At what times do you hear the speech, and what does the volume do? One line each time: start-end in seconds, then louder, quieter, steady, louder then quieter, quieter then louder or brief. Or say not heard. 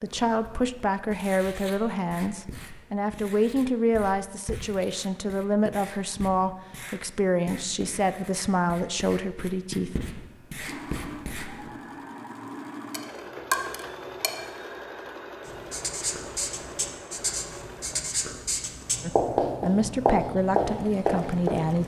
0.0-9.9 steady
19.0-21.8 brief.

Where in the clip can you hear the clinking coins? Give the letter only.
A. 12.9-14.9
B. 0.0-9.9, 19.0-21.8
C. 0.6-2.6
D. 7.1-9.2
A.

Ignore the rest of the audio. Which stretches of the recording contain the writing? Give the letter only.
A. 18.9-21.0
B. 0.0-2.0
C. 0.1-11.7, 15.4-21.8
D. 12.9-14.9
C.